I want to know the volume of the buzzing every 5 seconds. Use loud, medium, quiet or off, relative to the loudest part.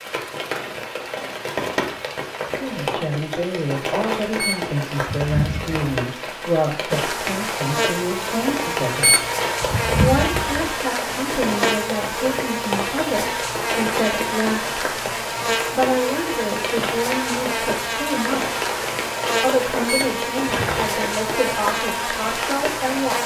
off, loud, loud, loud, loud.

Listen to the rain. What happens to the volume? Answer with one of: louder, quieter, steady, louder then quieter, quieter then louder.
steady.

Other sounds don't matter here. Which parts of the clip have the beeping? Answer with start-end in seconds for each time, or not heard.
4.3-5.8, 9.0-10.7, 19.9-20.9.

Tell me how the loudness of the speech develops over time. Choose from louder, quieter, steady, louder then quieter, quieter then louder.
steady.